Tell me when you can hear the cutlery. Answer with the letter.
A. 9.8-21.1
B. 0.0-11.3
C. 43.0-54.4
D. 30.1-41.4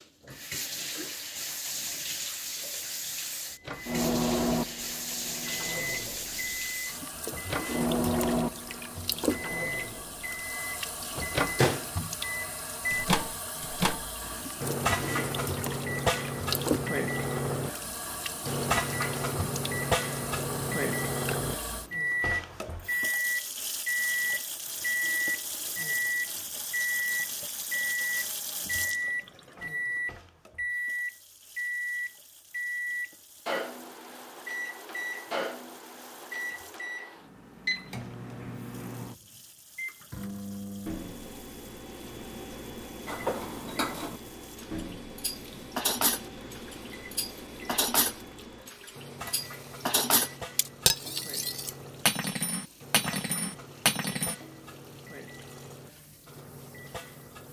C.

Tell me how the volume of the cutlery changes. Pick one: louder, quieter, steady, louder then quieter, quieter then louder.
louder.